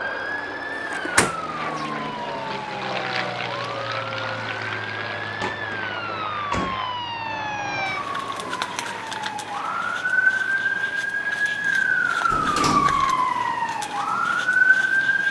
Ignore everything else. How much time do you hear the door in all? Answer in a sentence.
The door can be heard for 3 seconds in total.